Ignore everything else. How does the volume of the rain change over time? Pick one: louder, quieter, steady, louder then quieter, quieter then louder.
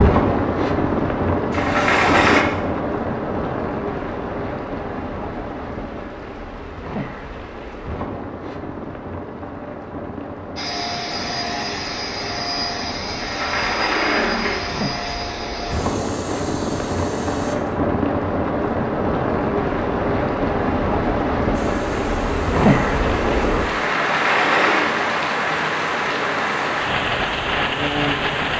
quieter then louder.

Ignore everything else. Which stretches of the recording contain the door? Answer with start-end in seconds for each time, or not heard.
1.5-2.5, 13.2-14.8, 24.1-24.9.